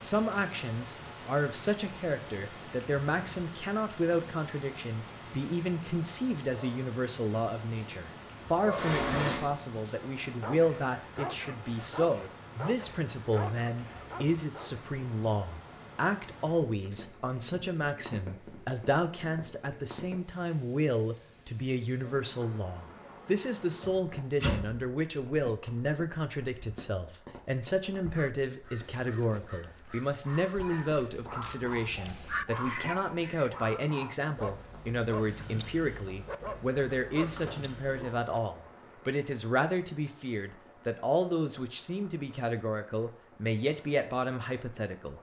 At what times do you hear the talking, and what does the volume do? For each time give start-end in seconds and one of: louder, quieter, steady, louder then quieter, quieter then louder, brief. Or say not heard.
0.0-45.1 steady.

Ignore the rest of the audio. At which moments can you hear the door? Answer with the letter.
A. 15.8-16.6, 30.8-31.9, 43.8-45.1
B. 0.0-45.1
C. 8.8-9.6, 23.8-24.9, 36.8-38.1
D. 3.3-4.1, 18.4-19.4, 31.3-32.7
C.